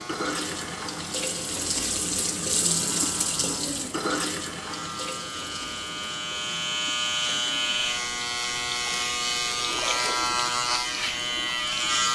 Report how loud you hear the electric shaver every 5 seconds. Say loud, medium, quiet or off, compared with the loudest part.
quiet, loud, loud.